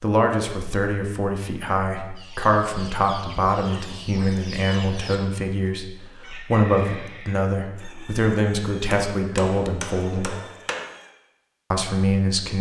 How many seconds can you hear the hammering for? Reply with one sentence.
You can hear the hammering for 2 seconds altogether.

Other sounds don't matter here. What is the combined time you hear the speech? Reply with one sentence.
You can hear the speech for 11 seconds altogether.